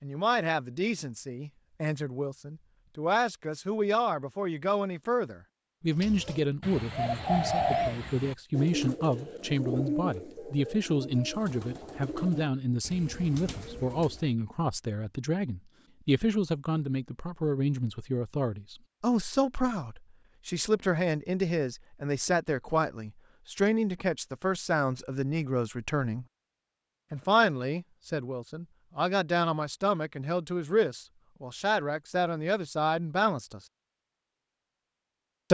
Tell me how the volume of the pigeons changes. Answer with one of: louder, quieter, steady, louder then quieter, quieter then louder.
quieter.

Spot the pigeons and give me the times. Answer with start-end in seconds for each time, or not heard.
6.0-14.3.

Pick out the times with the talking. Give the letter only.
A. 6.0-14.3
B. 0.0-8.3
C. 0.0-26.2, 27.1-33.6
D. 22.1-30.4
C.